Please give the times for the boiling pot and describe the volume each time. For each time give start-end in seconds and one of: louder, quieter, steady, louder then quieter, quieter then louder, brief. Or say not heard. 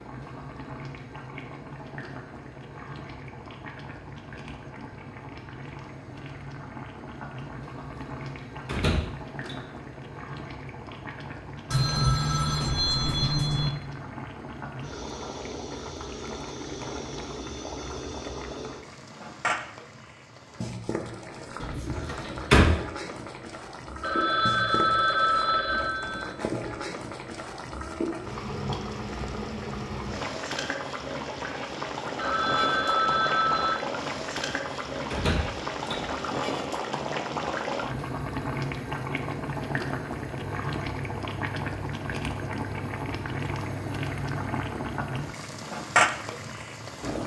0.0-47.2 louder.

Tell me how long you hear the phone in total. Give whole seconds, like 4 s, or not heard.
6 s.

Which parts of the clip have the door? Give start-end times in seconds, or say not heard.
8.7-9.6, 21.6-22.6, 35.1-36.0.